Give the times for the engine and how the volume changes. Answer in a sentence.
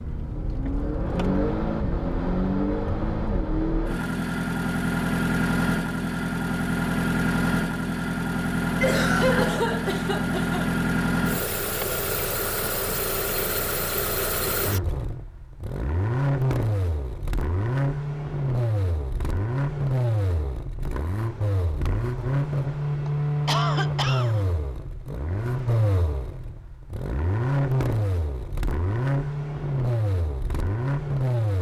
The engine can be heard from 0.0 to 31.5 s, at a steady volume.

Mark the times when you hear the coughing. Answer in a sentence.
You can hear the coughing from 8.8 to 10.7 s and from 23.1 to 24.4 s.